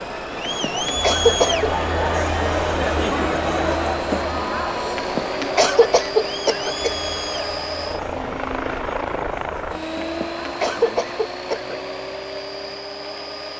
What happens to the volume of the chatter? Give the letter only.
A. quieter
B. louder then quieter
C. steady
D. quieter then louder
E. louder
A.